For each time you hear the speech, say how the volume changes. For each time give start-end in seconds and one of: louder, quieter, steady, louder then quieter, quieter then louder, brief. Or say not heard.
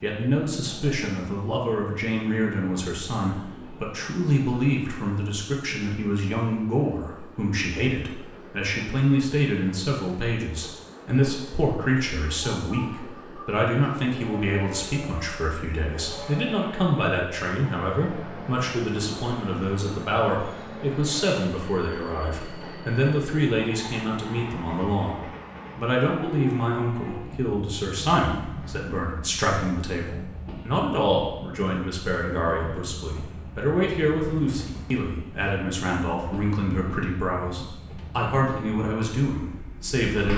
0.0-40.3 steady.